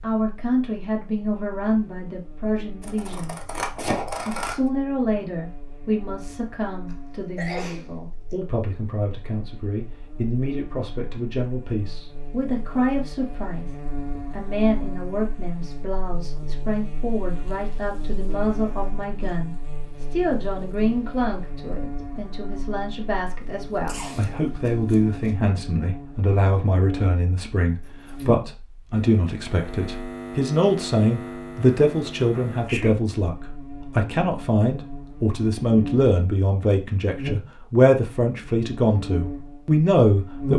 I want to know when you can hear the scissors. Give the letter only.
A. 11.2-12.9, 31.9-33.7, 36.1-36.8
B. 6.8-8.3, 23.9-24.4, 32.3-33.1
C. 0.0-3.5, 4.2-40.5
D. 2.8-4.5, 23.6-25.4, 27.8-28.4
D.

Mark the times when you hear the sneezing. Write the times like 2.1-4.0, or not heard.
6.8-8.3, 23.9-24.4, 32.3-33.1.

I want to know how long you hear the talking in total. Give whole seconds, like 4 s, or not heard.
40 s.